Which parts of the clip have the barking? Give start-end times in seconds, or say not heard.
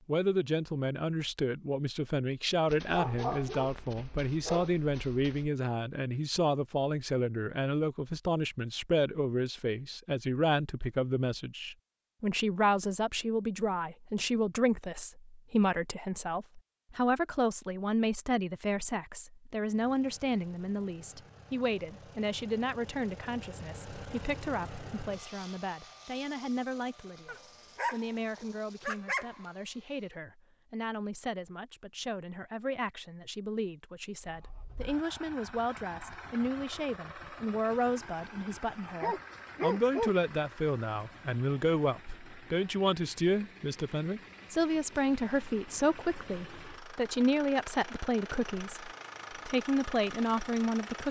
2.6-5.5, 27.2-29.4, 39.0-40.1.